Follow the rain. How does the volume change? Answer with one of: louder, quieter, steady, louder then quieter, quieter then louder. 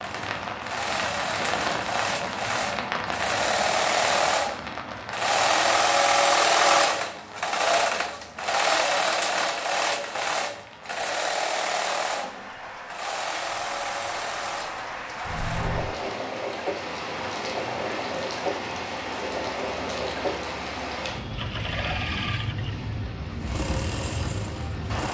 quieter then louder.